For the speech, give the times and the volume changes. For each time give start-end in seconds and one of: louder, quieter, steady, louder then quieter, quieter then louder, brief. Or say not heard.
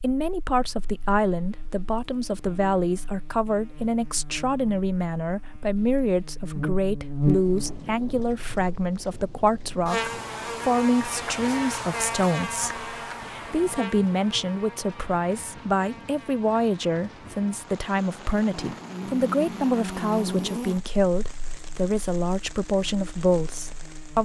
0.0-24.2 steady.